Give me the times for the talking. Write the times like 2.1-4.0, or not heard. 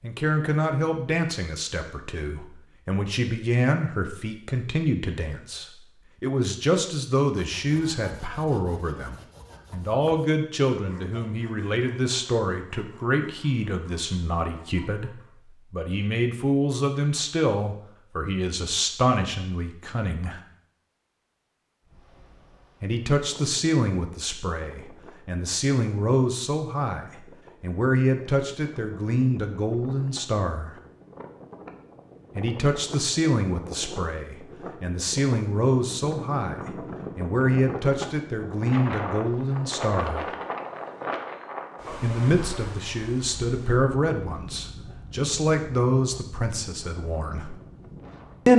0.0-20.4, 22.8-30.8, 32.4-40.3, 42.0-47.5.